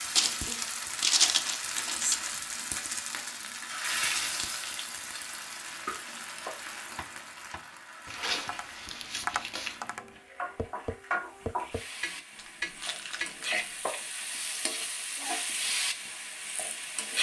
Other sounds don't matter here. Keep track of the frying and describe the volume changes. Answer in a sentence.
The volume of the frying goes down, then up.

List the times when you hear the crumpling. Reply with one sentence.
You can hear the crumpling from 0.1 to 2.1 s, from 8.1 to 9.8 s and from 12.3 to 13.8 s.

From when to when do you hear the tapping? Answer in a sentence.
The tapping can be heard from 5.8 to 14.1 s.